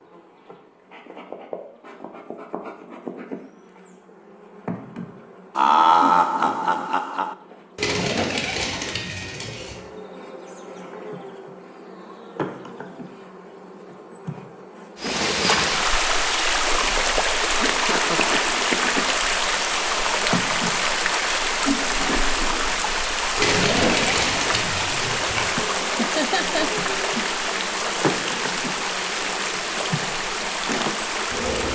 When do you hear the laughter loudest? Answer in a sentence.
The loudest moment of the laughter is at 6 seconds.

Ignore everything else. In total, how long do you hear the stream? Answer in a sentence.
The stream can be heard for 17 seconds in total.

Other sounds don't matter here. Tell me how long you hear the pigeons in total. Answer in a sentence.
The pigeons can be heard for 4 seconds in total.